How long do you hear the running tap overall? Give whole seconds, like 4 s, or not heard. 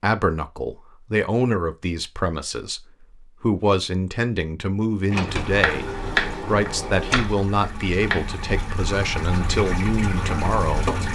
6 s.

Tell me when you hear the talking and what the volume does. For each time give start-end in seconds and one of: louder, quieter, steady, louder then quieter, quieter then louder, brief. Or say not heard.
0.0-11.1 steady.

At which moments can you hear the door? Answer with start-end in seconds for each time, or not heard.
5.1-7.3.